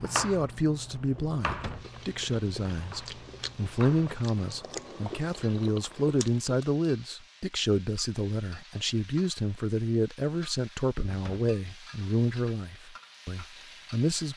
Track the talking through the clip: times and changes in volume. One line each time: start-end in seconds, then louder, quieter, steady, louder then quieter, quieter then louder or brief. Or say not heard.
0.0-14.3 steady.